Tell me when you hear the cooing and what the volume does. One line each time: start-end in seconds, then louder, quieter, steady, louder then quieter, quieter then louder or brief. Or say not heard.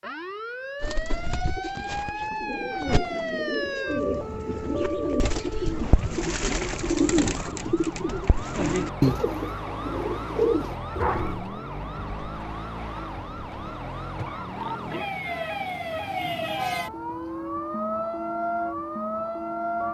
0.8-11.4 louder.